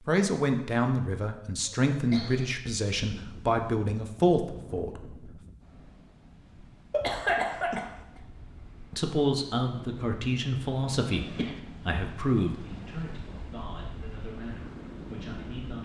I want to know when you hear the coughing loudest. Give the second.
7 s.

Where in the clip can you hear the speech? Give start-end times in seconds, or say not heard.
0.1-5.3, 8.9-15.7.